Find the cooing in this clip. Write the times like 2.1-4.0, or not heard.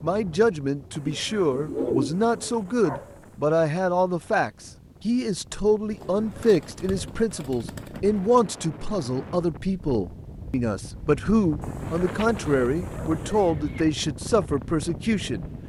1.1-2.5, 5.9-8.2, 12.2-13.8.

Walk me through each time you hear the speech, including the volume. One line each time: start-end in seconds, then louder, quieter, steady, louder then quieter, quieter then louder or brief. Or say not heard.
0.0-15.4 steady.